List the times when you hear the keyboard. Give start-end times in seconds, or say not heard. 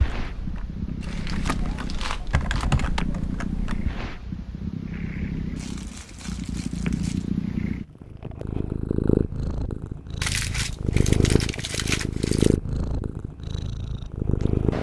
0.0-4.0.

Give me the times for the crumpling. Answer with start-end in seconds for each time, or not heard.
1.0-3.0, 5.5-7.3, 10.2-12.6.